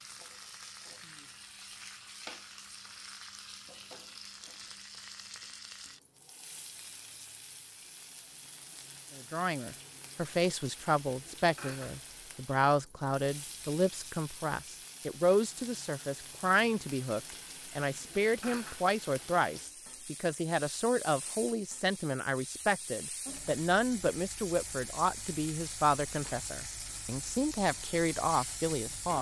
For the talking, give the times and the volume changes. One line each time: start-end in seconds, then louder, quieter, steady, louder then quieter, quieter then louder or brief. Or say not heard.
9.2-29.1 steady.